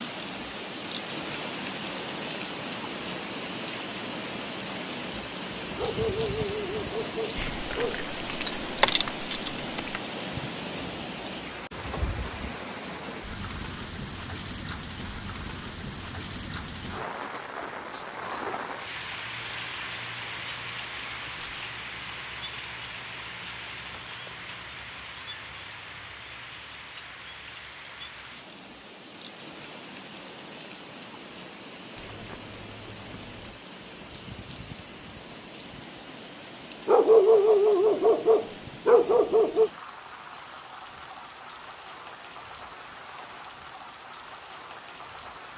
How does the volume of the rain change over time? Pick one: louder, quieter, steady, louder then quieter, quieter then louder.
quieter.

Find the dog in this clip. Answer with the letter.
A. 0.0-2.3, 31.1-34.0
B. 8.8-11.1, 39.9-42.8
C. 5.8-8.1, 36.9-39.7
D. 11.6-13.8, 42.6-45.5
C.